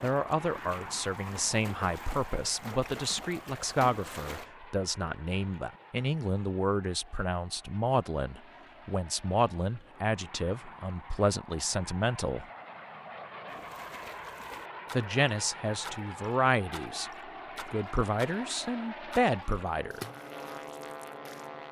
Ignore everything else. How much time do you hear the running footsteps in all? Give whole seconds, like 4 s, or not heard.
not heard.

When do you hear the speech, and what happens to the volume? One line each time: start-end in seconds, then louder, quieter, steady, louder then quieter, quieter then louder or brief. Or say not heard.
0.0-12.4 steady
14.9-17.1 brief
17.7-20.0 brief.